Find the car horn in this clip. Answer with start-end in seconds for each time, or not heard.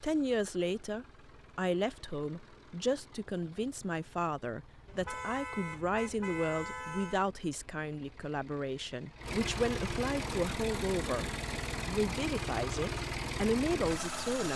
4.8-7.2.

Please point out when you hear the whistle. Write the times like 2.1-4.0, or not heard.
not heard.